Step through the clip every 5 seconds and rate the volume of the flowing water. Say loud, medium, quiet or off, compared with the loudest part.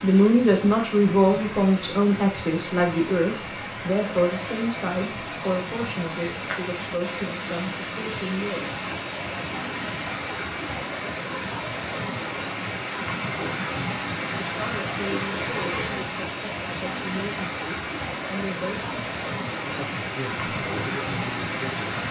medium, loud, loud, loud, loud.